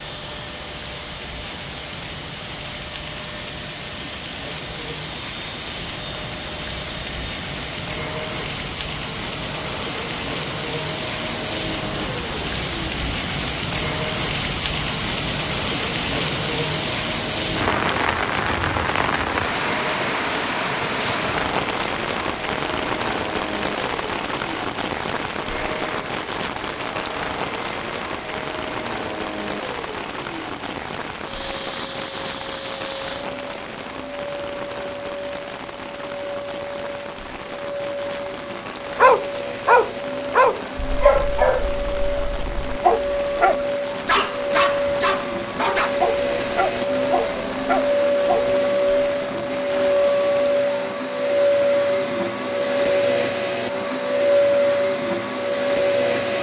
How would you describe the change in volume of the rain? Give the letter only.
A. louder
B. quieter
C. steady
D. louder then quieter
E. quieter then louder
D.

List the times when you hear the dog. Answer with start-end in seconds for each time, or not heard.
39.0-48.5.